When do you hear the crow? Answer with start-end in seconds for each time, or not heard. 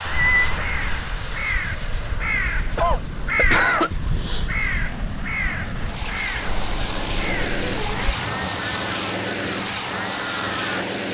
0.1-10.8.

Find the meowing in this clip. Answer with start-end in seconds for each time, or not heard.
0.1-1.1, 6.5-8.2.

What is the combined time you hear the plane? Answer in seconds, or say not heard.
11 s.